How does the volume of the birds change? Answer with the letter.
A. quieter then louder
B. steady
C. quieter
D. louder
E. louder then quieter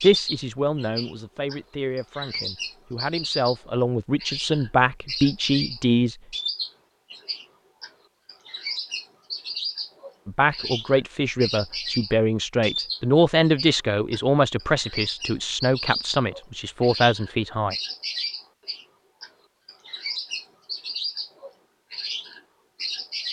B.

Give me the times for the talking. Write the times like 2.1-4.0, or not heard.
0.0-6.2, 10.2-17.8.